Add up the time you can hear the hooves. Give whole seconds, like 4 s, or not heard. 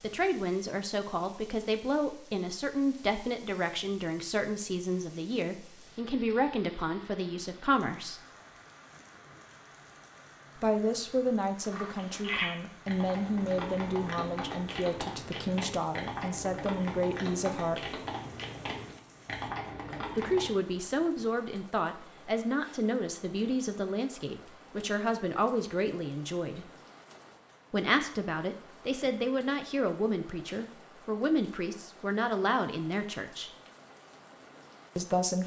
9 s.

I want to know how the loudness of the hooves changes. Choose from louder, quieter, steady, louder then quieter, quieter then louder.
steady.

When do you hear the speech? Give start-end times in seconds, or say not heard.
0.0-8.2, 10.6-18.0, 20.1-26.7, 27.7-33.5, 35.0-35.4.